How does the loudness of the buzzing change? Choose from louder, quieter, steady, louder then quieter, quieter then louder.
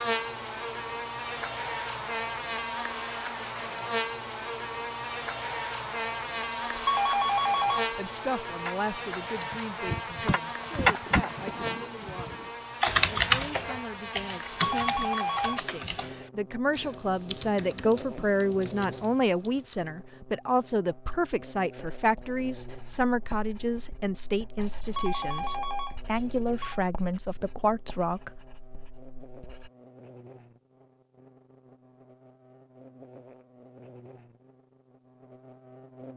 quieter.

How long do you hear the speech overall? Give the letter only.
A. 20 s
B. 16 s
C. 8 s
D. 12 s
A.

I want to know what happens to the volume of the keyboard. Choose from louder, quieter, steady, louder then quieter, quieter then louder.
quieter.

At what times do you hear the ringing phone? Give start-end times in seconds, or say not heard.
6.7-7.9, 14.5-15.7, 24.6-26.8.